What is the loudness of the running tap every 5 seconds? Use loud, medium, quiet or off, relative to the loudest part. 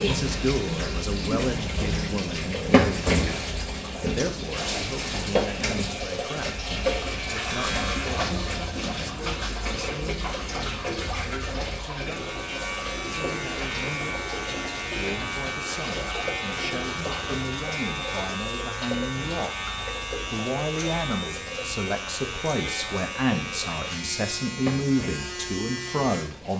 loud, loud, medium, medium, medium, quiet.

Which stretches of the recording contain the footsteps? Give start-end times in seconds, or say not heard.
not heard.